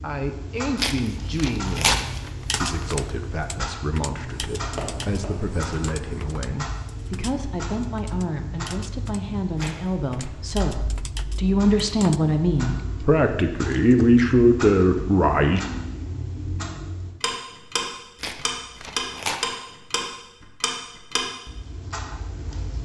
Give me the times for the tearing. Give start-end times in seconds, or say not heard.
0.8-3.0, 9.6-10.3, 18.1-19.4.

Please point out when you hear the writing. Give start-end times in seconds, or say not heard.
4.2-6.3.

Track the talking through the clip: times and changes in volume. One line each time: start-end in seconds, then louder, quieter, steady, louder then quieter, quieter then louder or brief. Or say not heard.
0.0-15.6 louder.